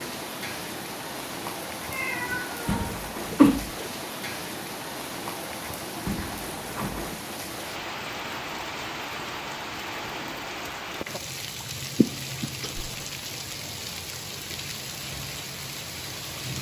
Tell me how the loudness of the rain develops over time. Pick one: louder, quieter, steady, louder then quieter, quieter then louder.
steady.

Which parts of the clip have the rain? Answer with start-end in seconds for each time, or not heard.
0.0-16.5.